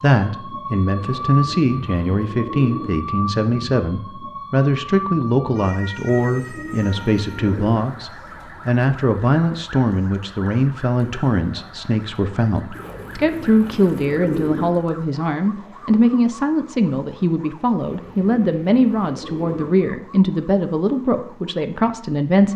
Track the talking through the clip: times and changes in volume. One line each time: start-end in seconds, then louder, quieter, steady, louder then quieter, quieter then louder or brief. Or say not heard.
0.0-22.5 steady.